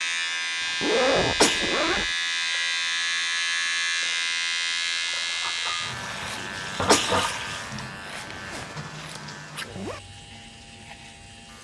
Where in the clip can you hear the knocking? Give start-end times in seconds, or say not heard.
not heard.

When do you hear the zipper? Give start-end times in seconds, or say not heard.
0.8-2.1, 8.2-10.0.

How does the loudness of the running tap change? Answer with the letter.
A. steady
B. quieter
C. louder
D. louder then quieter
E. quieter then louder
D.